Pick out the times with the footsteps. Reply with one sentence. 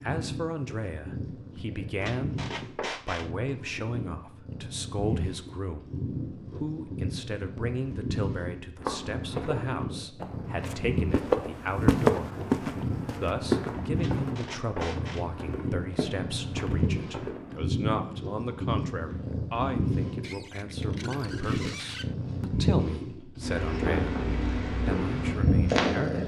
You can hear the footsteps from 8.8 to 17.6 s.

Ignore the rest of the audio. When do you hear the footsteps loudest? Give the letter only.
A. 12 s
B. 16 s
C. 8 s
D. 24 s
A.